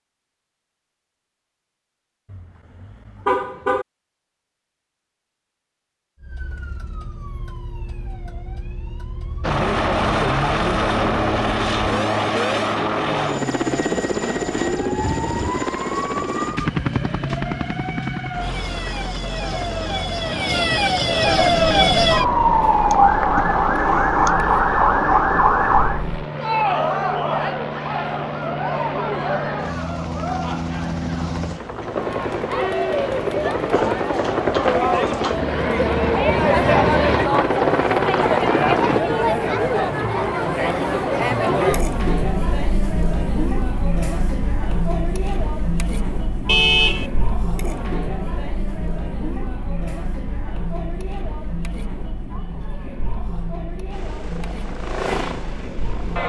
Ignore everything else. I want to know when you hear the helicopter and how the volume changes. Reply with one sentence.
The helicopter can be heard from 9.4 to 39.0 s, getting quieter then louder; and briefly from 53.9 to 56.2 s.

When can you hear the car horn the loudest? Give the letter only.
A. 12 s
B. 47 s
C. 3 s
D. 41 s
B.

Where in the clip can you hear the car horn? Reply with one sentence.
The car horn can be heard from 2.3 to 3.9 s and from 46.5 to 47.1 s.